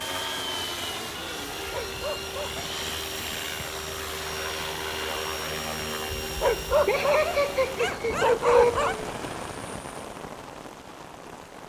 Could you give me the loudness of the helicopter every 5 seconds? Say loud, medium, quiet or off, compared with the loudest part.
loud, loud, off.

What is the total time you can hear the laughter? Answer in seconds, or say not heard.
2 s.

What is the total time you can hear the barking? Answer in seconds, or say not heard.
4 s.